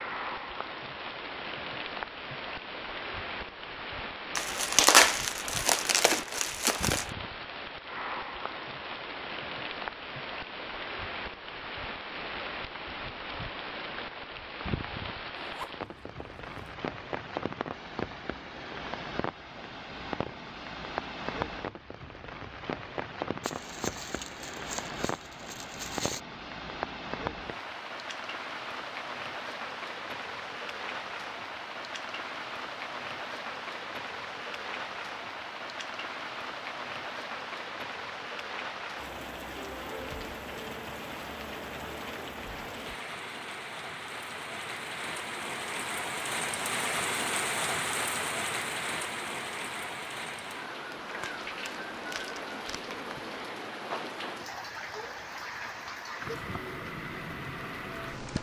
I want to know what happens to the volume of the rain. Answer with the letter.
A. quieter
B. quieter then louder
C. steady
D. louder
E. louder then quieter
C.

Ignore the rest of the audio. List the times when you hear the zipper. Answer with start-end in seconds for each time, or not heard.
15.3-16.8.